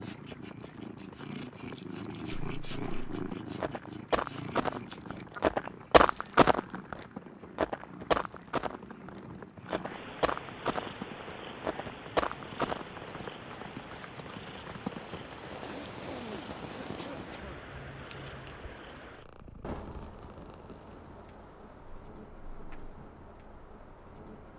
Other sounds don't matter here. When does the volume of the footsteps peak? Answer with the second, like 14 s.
6 s.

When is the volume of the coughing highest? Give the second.
16 s.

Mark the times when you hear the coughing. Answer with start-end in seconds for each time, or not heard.
15.6-17.6.